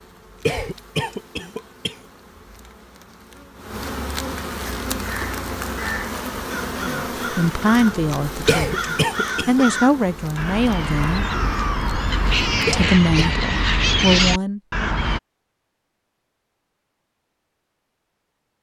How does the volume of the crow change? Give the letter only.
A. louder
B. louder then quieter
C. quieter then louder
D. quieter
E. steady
A.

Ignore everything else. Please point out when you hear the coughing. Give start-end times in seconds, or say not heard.
0.5-1.9, 8.4-9.7, 12.7-13.4.